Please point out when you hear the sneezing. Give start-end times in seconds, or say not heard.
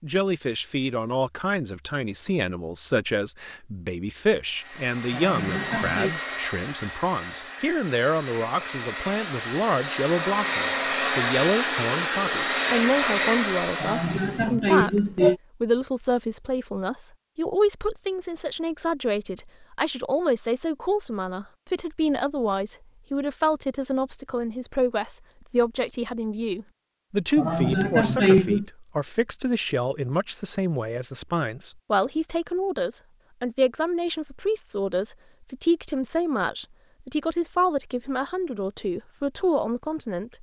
5.1-6.1, 13.8-15.3, 27.4-28.6.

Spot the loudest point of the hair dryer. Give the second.
13 s.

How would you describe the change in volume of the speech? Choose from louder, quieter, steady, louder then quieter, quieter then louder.
steady.